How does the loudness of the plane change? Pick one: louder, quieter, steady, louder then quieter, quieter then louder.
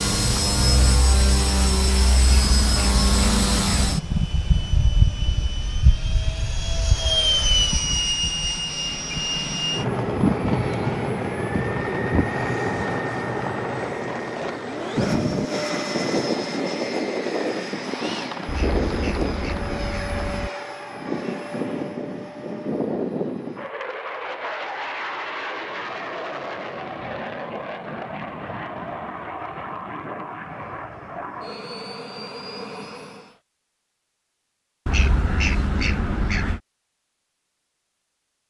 quieter.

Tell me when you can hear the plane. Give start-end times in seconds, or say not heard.
0.0-33.4.